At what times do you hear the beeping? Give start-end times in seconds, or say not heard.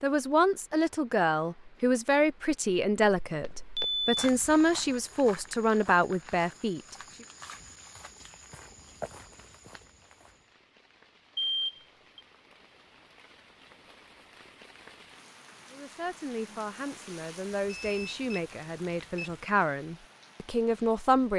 3.8-4.2, 11.3-12.2, 17.5-19.4.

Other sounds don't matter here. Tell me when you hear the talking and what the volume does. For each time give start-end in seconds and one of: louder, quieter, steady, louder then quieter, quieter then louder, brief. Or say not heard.
0.0-7.0 steady
15.7-21.3 louder.